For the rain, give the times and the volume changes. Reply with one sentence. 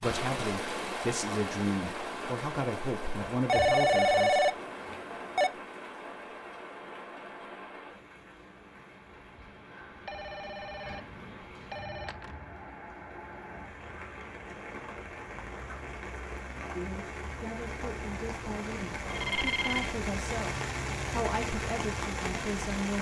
You can hear the rain from 0.0 to 22.9 s, getting quieter then louder.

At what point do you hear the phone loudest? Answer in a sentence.
The loudest moment of the phone is at 4 seconds.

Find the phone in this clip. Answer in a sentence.
The phone can be heard from 3.5 to 5.5 s, from 10.1 to 11.0 s, from 11.7 to 12.3 s and from 19.1 to 19.9 s.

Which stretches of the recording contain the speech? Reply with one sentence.
You can hear the speech from 0.0 to 4.5 s and from 16.8 to 22.9 s.